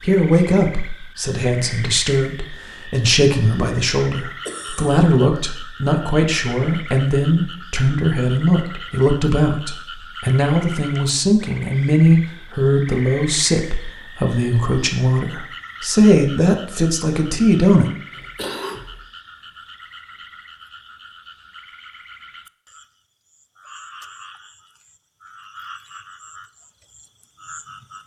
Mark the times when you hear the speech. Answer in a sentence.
You can hear the speech from 0.0 to 17.9 s.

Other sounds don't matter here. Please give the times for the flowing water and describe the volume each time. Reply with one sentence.
You can't hear the flowing water here.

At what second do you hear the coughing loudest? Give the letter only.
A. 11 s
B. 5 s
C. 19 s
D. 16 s
C.